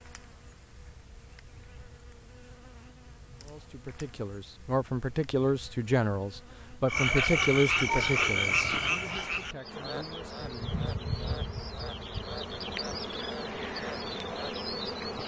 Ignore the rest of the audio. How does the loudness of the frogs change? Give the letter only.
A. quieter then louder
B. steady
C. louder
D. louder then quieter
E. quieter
E.